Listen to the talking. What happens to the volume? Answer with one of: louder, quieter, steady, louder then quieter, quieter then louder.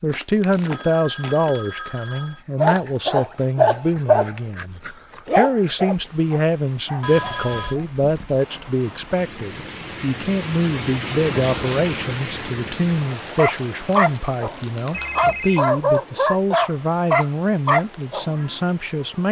steady.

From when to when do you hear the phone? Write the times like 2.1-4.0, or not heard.
0.7-2.5, 7.0-7.8, 14.9-15.7.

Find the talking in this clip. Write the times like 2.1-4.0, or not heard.
0.0-19.2.